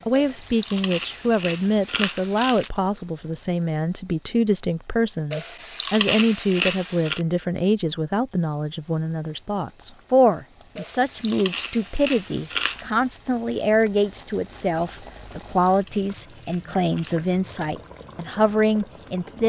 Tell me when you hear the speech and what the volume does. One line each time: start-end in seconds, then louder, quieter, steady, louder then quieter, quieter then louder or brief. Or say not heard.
0.1-19.4 steady.